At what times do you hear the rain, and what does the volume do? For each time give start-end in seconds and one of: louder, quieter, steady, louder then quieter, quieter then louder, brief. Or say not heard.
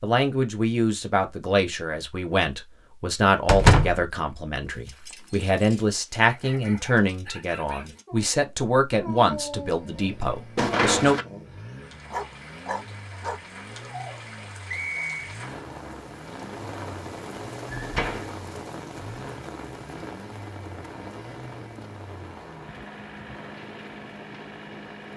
11.8-25.1 louder then quieter.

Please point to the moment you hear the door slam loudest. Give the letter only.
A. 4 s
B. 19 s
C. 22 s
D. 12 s
A.